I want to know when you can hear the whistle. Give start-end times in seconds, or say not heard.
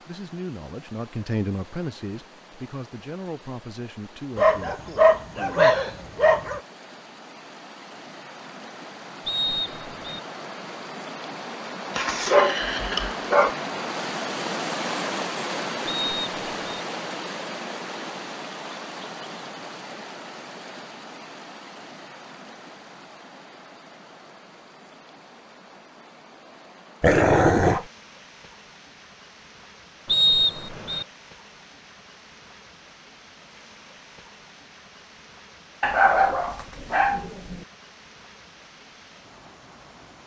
9.2-10.2, 15.8-16.8, 30.1-31.1.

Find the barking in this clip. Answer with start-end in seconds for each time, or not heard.
4.3-6.6, 11.9-13.6, 27.0-27.9, 35.8-37.6.